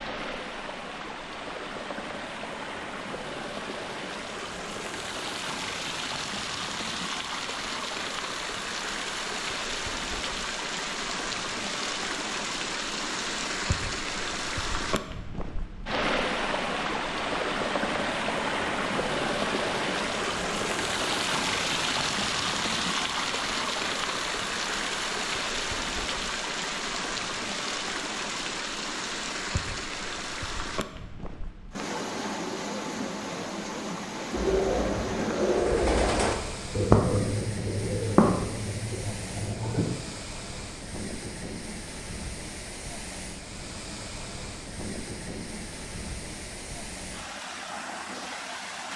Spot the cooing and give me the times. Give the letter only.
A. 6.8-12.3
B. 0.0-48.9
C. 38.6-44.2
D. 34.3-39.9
D.